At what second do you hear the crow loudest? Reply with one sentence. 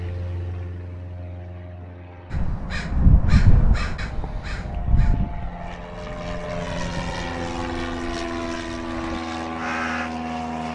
The volume of the crow peaks at 3 seconds.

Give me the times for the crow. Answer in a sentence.
The crow can be heard from 2.3 to 10.1 s.